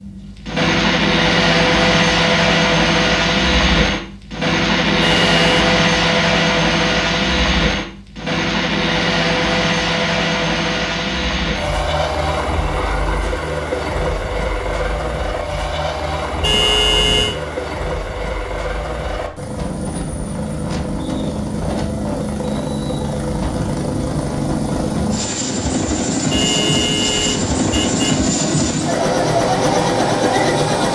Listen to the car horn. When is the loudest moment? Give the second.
17 s.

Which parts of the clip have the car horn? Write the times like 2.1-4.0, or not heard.
5.0-5.7, 16.4-17.4, 26.3-28.3.